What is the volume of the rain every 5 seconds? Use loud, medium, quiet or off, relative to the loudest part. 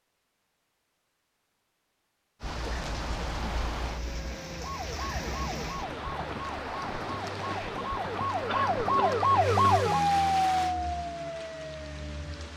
loud, loud, medium.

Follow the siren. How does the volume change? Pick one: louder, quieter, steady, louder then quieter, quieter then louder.
louder then quieter.